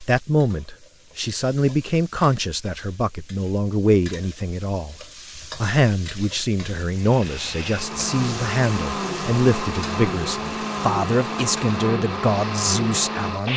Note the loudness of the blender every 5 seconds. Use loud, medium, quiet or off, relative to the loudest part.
off, loud, loud.